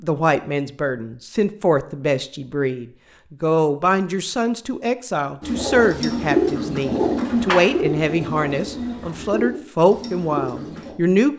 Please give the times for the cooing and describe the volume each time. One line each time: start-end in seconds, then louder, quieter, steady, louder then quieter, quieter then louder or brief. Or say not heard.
5.4-10.9 quieter.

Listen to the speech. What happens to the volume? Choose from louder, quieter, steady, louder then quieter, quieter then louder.
steady.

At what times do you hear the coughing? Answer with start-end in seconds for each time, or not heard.
not heard.